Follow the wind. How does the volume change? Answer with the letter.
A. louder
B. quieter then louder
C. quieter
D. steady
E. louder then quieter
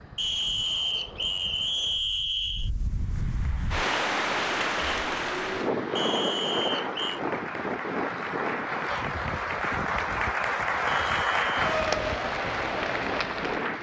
E.